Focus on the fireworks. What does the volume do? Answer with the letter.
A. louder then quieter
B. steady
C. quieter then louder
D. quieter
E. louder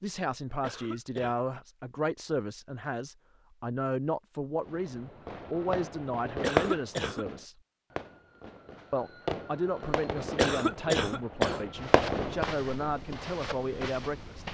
C.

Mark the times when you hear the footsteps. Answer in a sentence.
You can hear the footsteps from 11.8 to 14.4 s.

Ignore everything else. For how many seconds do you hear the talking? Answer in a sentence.
The talking can be heard for 13 seconds in total.